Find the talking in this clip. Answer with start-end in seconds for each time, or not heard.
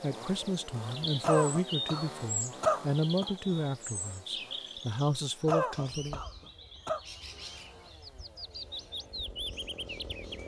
0.0-6.2.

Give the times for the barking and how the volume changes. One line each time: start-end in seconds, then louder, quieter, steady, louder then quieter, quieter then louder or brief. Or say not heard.
not heard.